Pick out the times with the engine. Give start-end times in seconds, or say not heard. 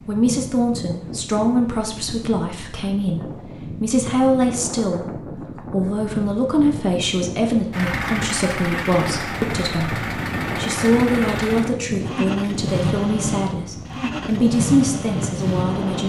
7.7-16.0.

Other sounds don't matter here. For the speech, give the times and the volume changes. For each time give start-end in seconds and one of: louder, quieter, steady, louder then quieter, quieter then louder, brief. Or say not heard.
0.1-16.0 steady.